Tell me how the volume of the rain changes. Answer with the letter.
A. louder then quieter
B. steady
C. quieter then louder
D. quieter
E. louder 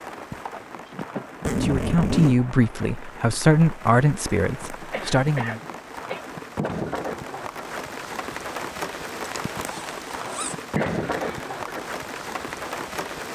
E.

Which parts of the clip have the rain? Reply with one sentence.
You can hear the rain from 0.0 to 13.3 s.